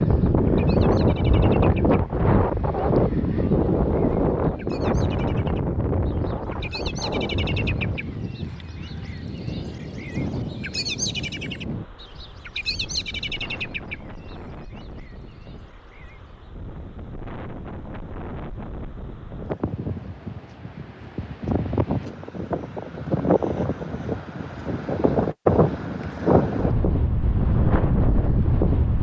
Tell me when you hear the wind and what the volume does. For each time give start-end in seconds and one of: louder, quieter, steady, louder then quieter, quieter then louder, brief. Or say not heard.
0.0-28.9 quieter then louder.